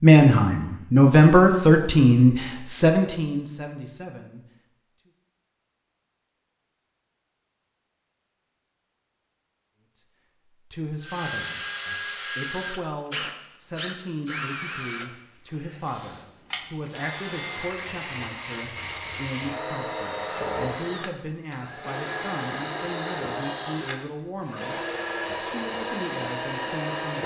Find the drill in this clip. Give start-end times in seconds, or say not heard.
11.0-27.2.